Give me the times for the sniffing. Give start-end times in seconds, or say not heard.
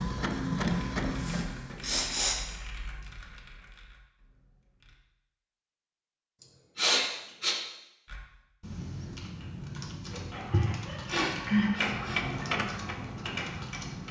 1.1-2.5, 6.4-7.5, 10.5-12.4.